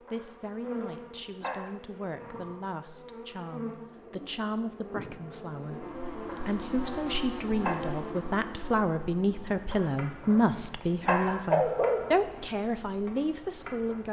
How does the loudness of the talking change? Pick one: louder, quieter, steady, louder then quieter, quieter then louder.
louder.